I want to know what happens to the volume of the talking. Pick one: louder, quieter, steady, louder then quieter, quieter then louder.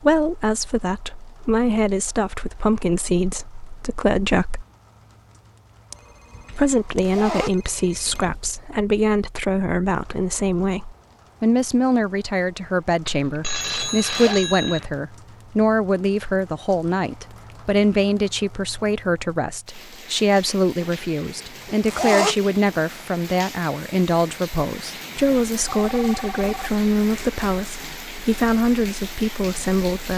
steady.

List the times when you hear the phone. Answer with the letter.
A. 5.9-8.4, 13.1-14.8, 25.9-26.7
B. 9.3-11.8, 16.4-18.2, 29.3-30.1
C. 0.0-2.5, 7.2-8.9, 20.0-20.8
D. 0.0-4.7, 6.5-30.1
A.